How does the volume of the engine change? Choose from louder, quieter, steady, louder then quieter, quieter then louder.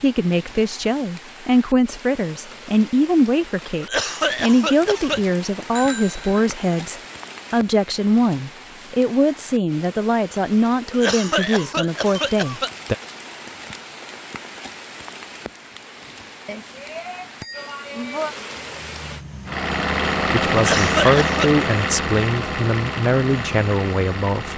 louder then quieter.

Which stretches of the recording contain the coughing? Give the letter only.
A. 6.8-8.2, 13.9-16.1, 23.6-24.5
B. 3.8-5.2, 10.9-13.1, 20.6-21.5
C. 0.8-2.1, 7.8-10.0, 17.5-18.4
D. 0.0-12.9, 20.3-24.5
B.